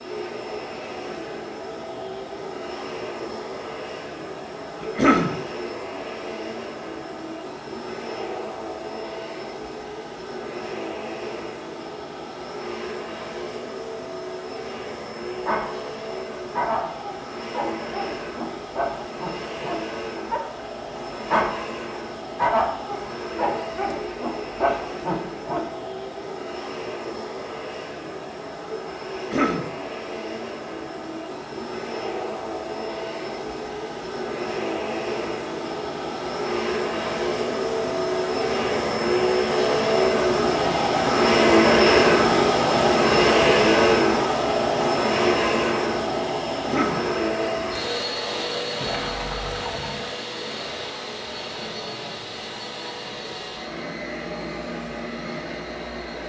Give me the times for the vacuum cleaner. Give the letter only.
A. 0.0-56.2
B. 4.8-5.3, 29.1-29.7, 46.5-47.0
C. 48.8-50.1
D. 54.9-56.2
A.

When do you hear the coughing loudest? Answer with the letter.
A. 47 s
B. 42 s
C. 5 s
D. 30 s
C.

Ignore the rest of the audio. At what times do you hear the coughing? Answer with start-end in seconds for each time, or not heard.
4.8-5.3, 29.1-29.7, 46.5-47.0.